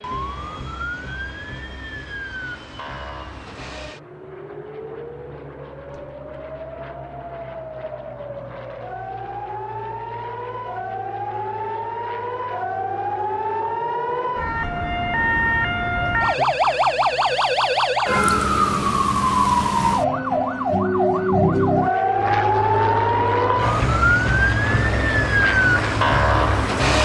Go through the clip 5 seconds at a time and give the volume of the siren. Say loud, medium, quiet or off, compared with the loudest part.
quiet, quiet, medium, loud, loud, loud.